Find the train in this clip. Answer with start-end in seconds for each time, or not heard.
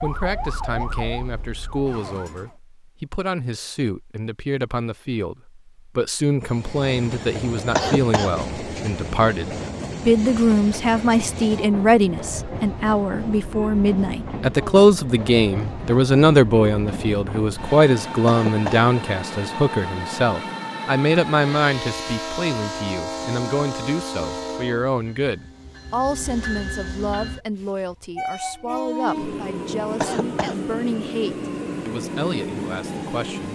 6.4-33.5.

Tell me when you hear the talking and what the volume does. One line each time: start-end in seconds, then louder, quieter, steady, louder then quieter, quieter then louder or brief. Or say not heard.
0.0-33.5 louder then quieter.